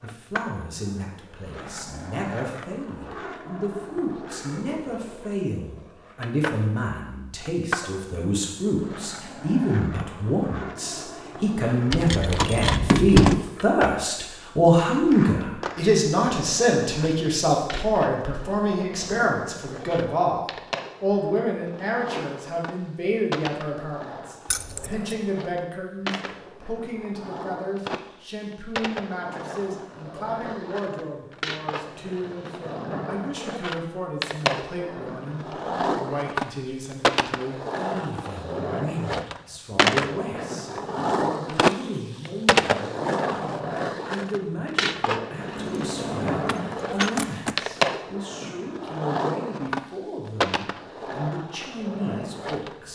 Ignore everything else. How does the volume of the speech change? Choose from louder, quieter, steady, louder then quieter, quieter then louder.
louder then quieter.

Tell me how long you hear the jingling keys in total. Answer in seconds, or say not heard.
4 s.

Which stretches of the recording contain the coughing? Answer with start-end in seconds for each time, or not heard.
not heard.